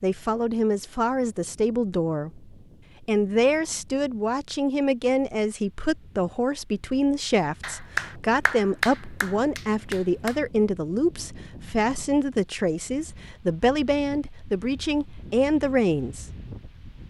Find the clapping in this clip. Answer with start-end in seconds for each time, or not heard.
7.6-10.4.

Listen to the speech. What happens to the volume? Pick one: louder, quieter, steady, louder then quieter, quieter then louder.
steady.